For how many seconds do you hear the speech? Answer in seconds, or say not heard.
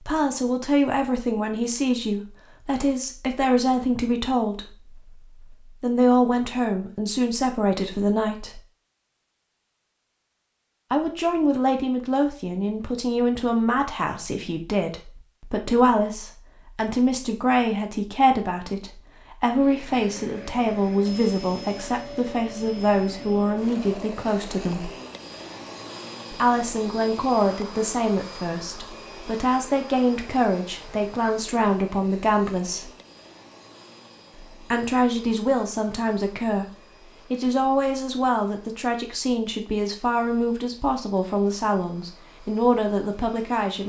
38 s.